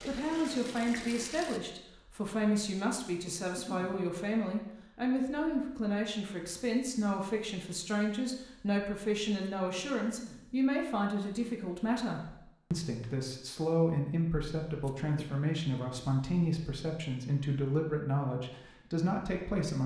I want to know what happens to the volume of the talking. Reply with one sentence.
The volume of the talking stays about the same.